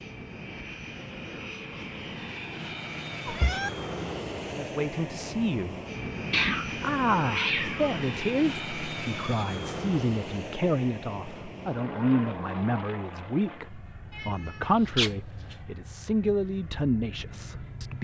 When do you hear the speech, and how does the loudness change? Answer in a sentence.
You can hear the speech briefly from 4.5 to 5.8 s; and from 6.7 to 18.0 s, at a steady volume.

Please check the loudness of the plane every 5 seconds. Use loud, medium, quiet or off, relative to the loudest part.
loud, loud, medium, medium.